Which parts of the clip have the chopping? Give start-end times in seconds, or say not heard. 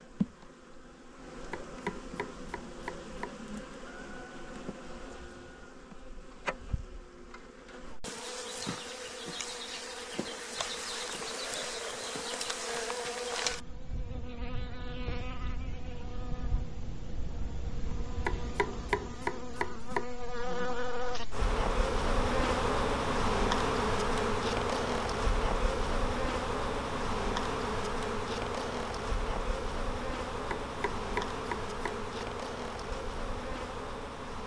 1.5-3.3, 18.2-20.1, 30.5-32.0.